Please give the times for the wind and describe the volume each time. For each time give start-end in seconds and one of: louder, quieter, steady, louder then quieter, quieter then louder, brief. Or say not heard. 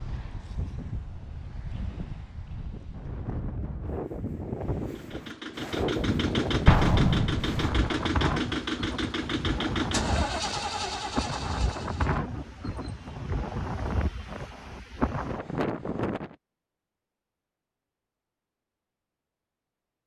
0.0-16.4 louder.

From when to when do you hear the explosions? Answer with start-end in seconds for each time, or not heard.
6.7-8.0.